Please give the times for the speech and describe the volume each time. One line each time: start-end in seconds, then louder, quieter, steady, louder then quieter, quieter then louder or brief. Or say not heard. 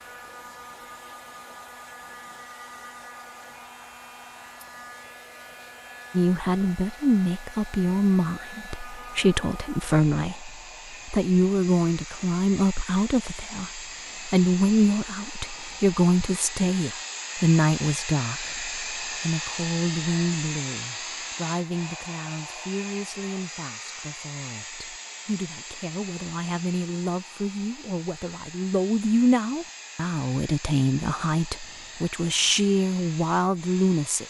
6.1-34.2 quieter then louder.